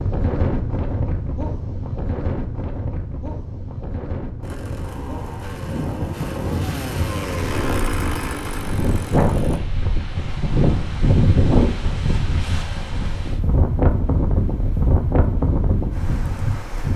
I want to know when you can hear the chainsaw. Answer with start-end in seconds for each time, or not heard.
4.4-9.6.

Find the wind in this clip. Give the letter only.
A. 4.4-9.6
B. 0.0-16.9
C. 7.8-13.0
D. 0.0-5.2
B.